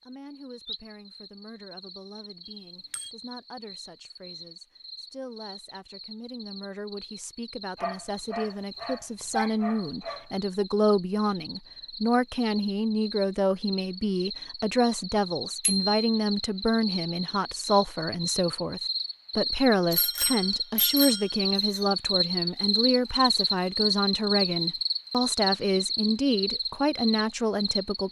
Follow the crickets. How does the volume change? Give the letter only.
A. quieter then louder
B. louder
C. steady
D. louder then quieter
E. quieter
B.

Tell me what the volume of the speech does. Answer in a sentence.
The volume of the speech goes up.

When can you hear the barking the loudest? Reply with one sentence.
The loudest moment of the barking is at 10 seconds.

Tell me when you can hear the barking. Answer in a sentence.
The barking can be heard from 7.8 to 10.7 s.